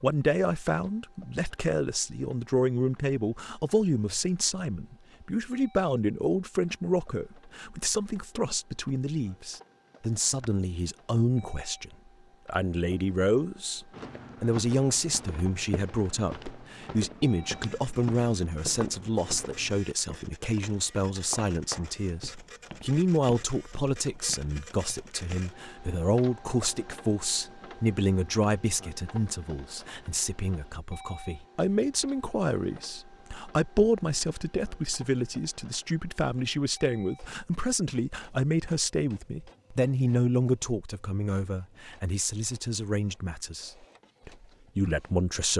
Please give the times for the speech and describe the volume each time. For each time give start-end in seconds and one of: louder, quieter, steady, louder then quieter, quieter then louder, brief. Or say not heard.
0.0-45.5 steady.